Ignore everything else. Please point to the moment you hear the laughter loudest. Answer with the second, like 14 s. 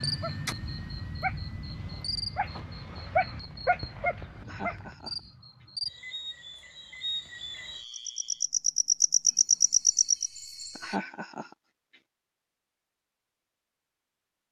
11 s.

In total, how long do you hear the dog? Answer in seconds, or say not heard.
5 s.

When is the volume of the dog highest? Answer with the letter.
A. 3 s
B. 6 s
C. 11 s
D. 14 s
A.